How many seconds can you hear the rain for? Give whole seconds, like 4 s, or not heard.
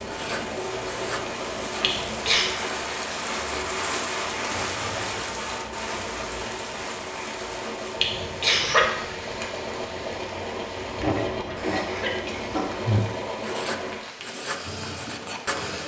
16 s.